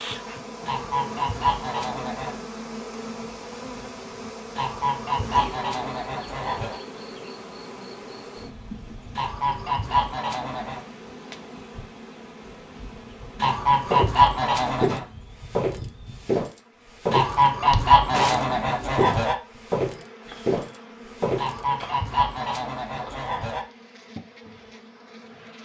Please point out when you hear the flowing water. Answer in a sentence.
The flowing water can't be heard in this clip.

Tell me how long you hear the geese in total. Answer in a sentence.
The geese can be heard for 12 seconds in total.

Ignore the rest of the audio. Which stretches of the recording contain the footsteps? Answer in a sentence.
You can hear the footsteps from 13.8 to 21.9 s.